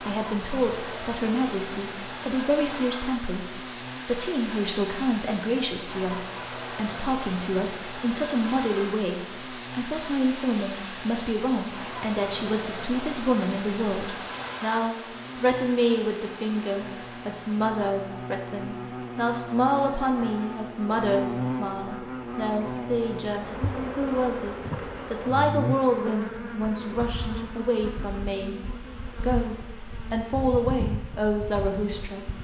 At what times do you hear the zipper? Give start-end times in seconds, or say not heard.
not heard.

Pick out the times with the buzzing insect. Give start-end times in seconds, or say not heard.
0.0-32.3.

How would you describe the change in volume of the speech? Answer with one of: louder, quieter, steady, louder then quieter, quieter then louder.
steady.